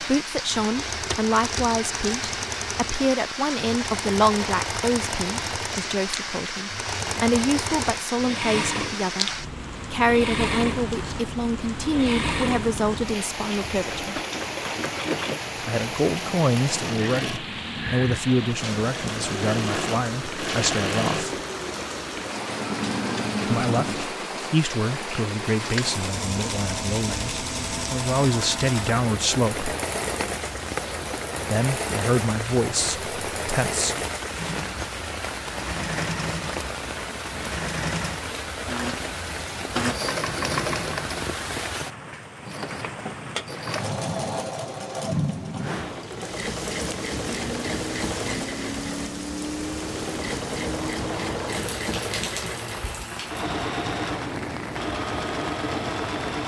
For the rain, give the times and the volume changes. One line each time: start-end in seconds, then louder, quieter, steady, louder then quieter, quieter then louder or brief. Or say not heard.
0.0-56.4 steady.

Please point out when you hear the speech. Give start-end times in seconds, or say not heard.
0.0-14.1, 15.7-21.4, 23.4-29.7, 31.5-34.0.